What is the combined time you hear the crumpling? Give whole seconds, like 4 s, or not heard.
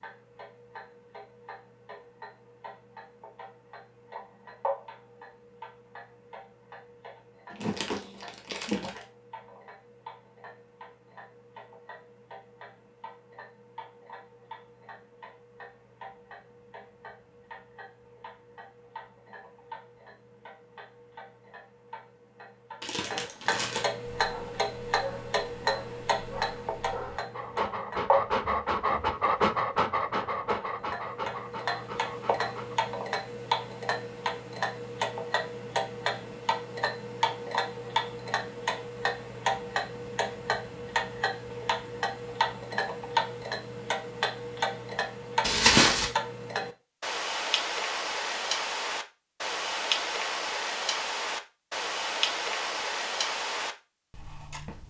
3 s.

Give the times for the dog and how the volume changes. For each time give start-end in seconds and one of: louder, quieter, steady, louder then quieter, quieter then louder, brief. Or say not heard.
24.2-32.8 louder then quieter.